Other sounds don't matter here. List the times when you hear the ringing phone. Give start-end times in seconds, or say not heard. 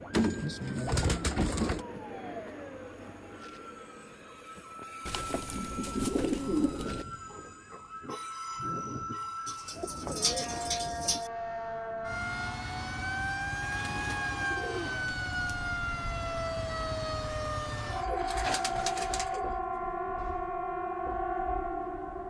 not heard.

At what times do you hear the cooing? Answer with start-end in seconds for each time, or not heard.
0.1-1.9, 5.0-7.0, 9.4-11.2, 13.6-15.6, 17.9-19.5.